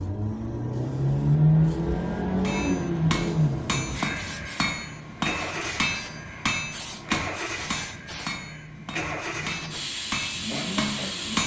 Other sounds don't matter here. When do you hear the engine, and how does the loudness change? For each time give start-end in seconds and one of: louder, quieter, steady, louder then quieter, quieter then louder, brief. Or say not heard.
0.0-11.4 quieter.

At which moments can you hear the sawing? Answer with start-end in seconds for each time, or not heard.
not heard.